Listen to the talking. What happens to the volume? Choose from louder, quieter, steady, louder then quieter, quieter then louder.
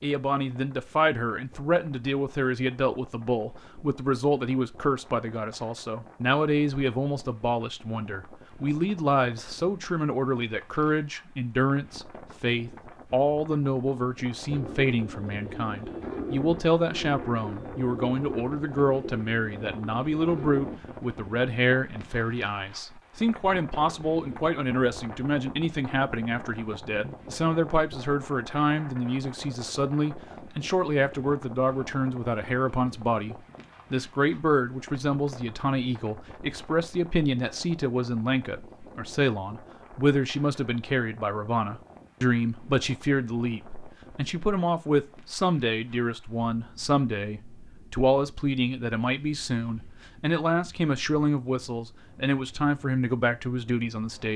steady.